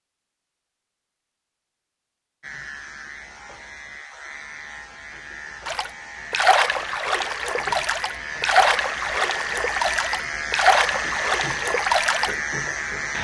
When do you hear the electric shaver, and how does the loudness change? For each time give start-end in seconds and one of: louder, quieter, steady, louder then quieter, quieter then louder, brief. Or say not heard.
2.4-13.1 louder.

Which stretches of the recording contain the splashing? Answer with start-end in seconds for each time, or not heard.
5.7-12.3.